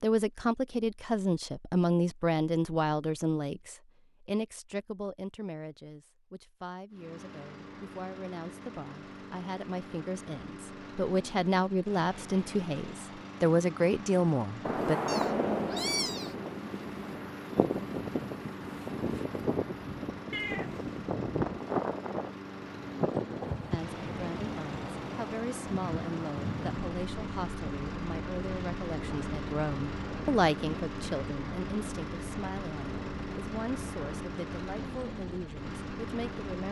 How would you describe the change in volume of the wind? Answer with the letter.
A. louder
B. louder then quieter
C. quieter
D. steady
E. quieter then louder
C.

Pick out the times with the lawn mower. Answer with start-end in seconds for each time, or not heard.
6.9-36.6.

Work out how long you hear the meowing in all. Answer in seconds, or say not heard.
2 s.